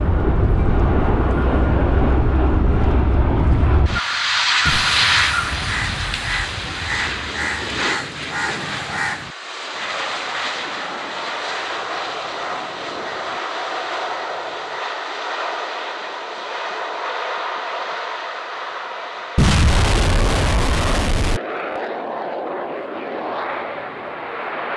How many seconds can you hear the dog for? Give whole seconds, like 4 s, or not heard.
not heard.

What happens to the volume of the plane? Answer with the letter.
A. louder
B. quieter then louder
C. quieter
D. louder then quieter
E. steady
C.